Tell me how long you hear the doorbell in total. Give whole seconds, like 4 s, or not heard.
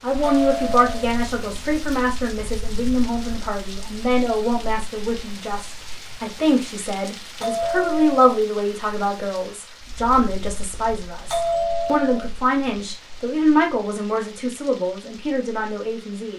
3 s.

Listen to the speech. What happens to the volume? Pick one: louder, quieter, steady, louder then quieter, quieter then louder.
steady.